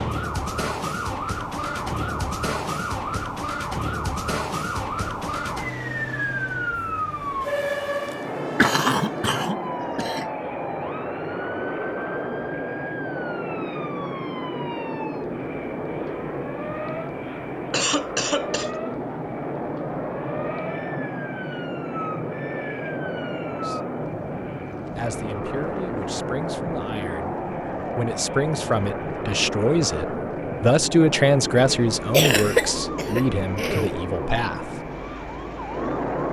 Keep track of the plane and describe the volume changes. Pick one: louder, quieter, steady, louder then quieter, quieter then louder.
louder.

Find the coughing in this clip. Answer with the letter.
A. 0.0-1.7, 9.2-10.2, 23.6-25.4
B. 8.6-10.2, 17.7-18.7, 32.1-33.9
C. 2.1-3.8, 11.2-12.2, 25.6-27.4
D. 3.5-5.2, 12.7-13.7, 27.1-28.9
B.